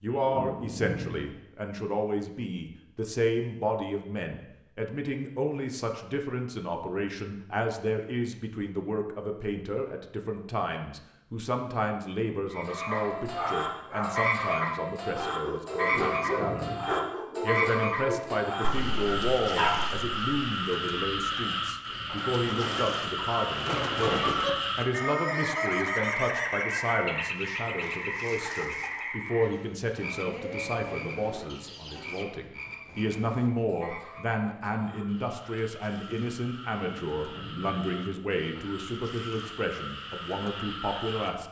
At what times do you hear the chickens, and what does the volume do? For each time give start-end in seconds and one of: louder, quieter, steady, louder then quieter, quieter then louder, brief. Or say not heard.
22.1-32.2 quieter.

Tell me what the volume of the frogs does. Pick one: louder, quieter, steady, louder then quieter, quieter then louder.
quieter.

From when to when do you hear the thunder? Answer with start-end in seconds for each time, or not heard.
0.2-1.3, 15.8-16.9, 36.8-37.8.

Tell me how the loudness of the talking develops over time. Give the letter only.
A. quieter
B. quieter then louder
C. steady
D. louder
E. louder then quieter
C.